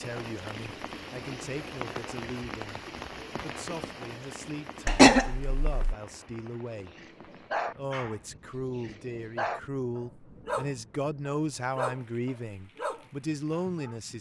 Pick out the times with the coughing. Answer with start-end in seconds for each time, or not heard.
4.8-6.0.